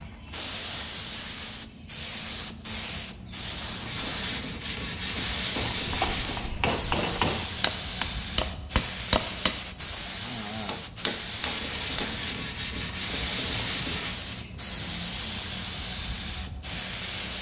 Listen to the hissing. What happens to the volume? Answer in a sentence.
The loudness of the hissing stays about the same.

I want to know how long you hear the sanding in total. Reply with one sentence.
The sanding can be heard for 5 seconds in total.